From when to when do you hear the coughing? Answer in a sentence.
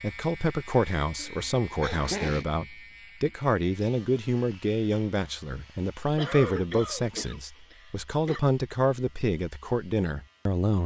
You can hear the coughing from 1.1 to 2.5 s and from 6.2 to 8.4 s.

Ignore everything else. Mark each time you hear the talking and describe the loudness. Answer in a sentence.
The talking can be heard from 0.0 to 10.8 s, at a steady volume.